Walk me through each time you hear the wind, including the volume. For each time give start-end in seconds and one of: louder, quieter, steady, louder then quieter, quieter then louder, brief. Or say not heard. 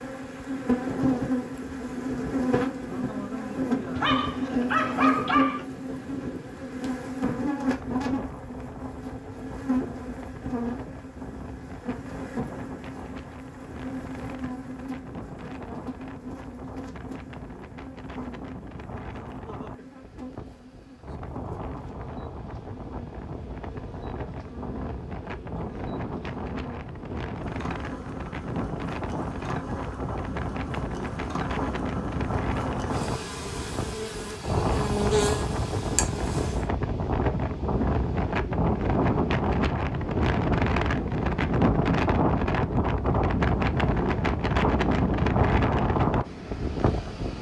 0.0-47.3 louder.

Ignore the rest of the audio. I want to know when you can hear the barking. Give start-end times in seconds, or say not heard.
4.0-5.7.